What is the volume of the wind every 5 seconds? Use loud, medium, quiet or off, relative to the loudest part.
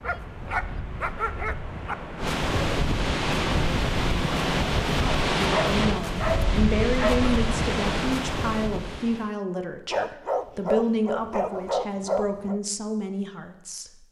loud, loud, off.